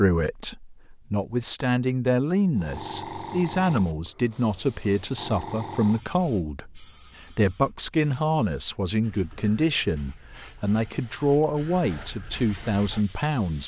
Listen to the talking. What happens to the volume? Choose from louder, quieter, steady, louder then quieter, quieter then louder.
steady.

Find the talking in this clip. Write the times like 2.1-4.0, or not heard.
0.0-13.6.